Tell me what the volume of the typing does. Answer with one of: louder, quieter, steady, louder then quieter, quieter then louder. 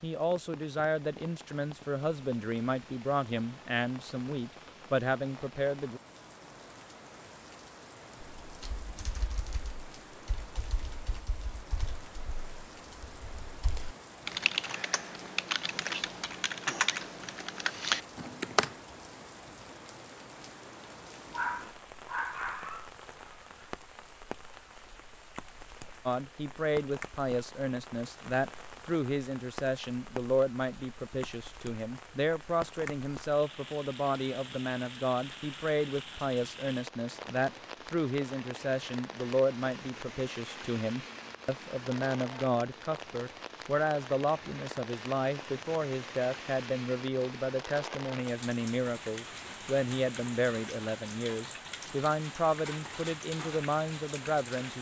louder.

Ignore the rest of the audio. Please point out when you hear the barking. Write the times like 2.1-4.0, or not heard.
21.3-23.6.